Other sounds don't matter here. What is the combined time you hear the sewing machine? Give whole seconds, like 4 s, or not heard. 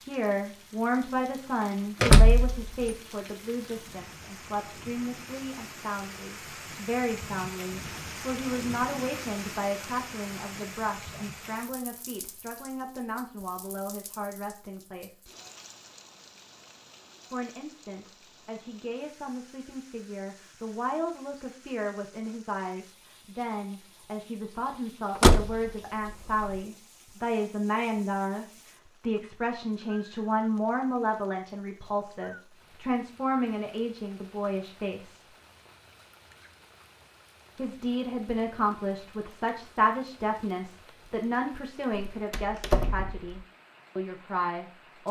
not heard.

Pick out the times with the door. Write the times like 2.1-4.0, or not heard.
2.0-2.7, 25.1-26.6, 42.1-43.4.